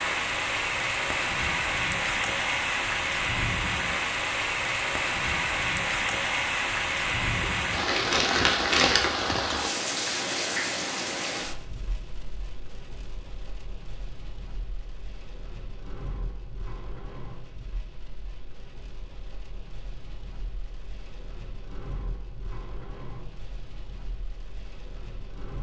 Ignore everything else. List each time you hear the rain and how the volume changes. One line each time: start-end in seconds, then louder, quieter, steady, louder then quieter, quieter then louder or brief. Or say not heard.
0.0-25.5 quieter.